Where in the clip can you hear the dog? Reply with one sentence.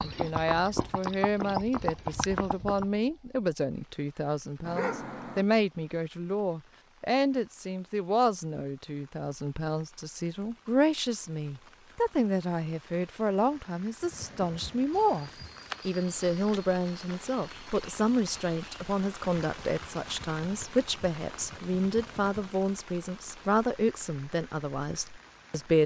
The dog can be heard from 4.7 to 5.5 s.